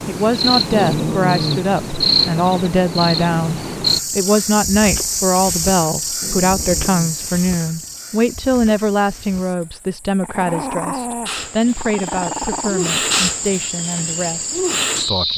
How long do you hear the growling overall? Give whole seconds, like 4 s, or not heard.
5 s.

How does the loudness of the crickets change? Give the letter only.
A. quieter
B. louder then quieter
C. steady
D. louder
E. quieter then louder
E.